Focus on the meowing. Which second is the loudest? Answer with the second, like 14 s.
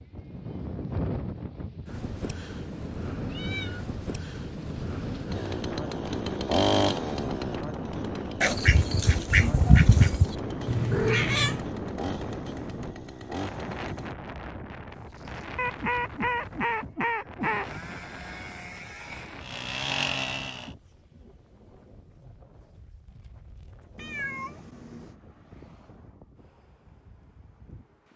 11 s.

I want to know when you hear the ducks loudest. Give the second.
10 s.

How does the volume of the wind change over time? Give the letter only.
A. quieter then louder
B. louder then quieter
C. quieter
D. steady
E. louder
C.